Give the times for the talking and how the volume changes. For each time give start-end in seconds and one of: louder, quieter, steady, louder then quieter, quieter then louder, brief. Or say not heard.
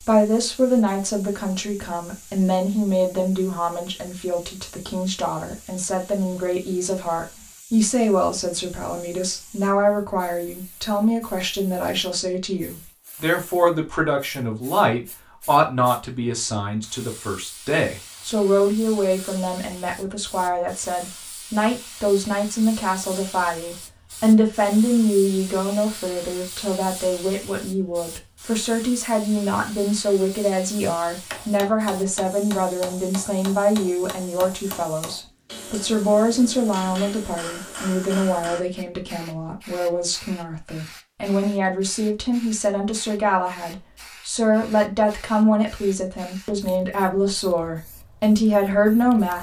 0.0-49.3 steady.